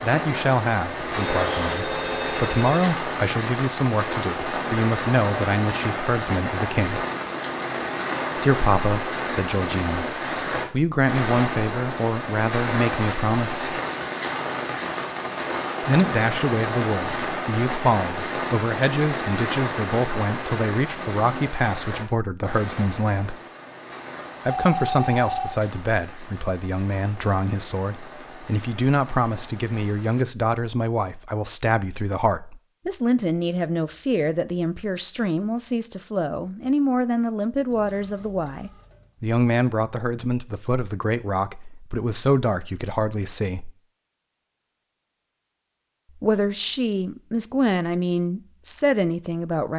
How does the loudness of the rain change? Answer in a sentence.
The volume of the rain goes down.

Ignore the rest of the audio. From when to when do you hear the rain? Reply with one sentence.
You can hear the rain from 0.0 to 30.2 s.